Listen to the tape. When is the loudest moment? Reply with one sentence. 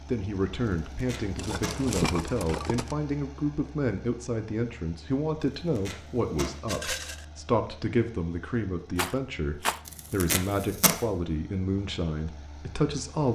The volume of the tape peaks at 11 seconds.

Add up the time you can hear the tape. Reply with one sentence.
You can hear the tape for 3 seconds altogether.